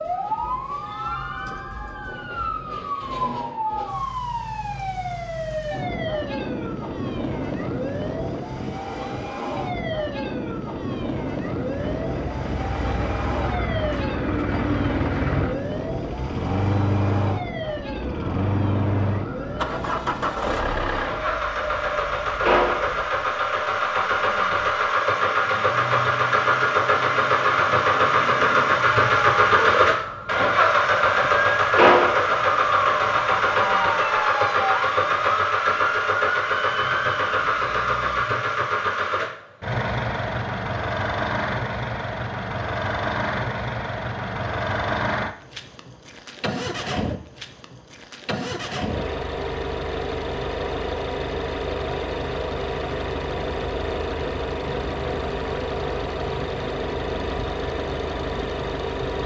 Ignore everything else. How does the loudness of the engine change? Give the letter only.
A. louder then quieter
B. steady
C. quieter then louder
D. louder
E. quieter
A.